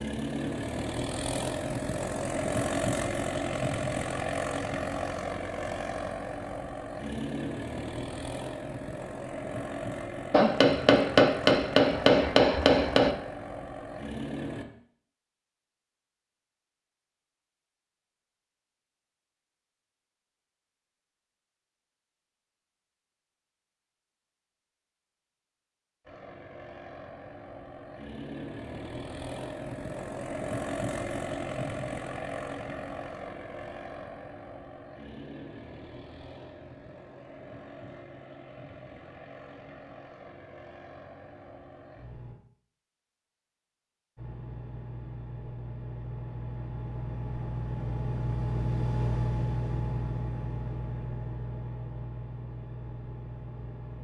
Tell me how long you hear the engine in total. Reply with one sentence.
You can hear the engine for 41 seconds altogether.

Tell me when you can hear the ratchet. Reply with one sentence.
You can't hear the ratchet here.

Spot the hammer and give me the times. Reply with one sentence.
The hammer can be heard from 10.3 to 13.2 s.